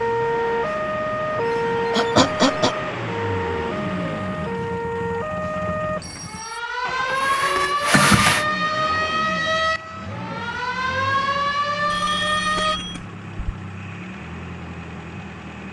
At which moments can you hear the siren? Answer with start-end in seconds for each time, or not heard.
0.0-12.8.